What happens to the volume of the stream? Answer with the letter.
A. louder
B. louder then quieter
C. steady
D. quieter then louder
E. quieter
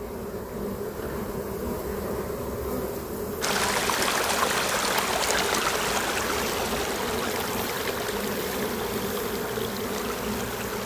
E.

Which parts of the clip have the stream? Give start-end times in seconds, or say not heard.
3.4-10.8.